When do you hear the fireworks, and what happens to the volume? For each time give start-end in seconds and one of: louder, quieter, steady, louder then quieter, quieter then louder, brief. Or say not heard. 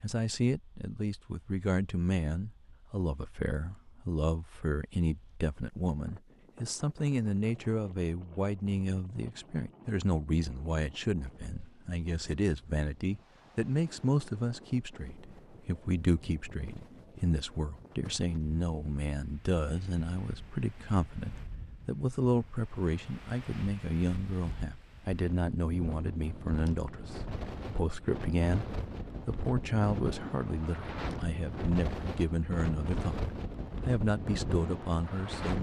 not heard.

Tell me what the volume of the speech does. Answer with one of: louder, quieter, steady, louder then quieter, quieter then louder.
steady.